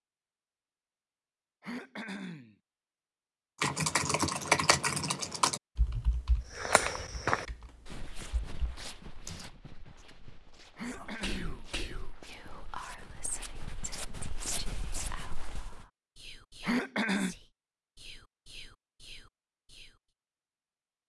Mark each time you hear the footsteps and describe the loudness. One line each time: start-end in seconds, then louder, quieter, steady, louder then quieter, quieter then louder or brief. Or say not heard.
6.5-15.8 quieter then louder.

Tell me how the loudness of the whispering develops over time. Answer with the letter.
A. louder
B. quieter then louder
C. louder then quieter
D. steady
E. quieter
E.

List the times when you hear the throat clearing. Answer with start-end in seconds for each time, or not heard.
1.6-2.5, 10.8-11.7, 16.6-17.4.